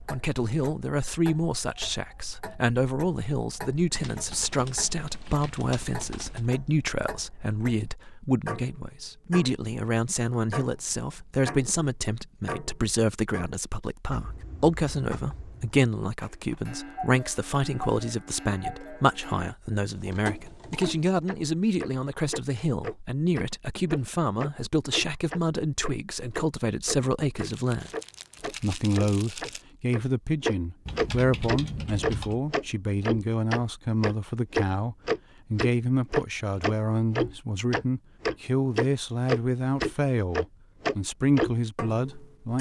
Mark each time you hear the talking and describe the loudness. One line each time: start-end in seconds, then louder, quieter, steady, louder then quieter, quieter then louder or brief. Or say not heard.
0.1-42.5 steady.